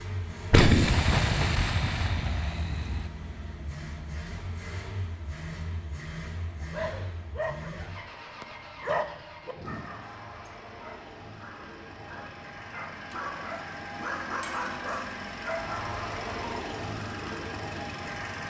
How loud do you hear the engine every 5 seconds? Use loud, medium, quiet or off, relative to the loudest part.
medium, medium, medium, loud.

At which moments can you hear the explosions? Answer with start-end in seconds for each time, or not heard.
0.5-3.0.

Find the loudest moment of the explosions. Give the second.
1 s.